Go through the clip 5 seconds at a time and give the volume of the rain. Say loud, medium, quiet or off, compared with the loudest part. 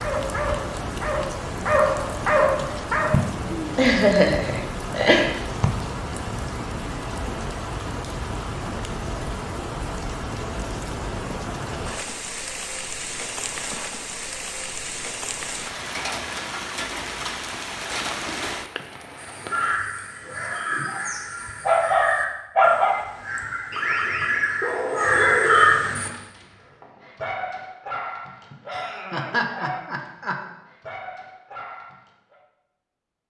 loud, loud, loud, loud, off, off, off.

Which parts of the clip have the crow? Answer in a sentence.
You can hear the crow from 19.1 to 26.1 s.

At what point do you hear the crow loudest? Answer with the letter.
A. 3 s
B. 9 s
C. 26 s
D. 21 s
C.